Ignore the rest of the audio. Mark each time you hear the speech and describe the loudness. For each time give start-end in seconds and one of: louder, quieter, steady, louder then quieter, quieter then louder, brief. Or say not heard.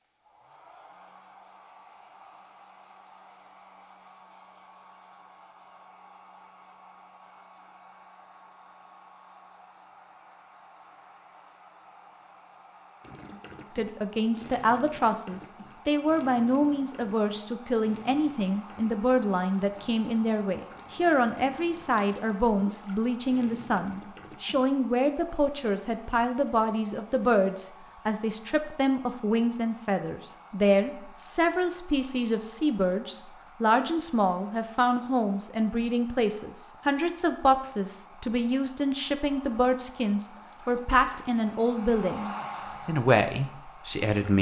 13.8-44.3 steady.